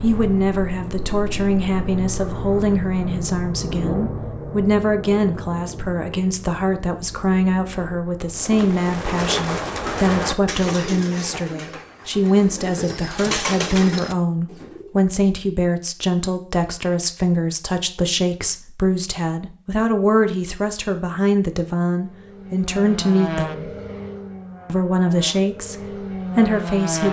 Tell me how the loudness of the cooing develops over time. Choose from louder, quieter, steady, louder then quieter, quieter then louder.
quieter then louder.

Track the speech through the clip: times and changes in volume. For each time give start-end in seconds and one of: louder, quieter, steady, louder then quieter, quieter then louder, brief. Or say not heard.
0.0-23.7 steady
24.6-27.0 brief.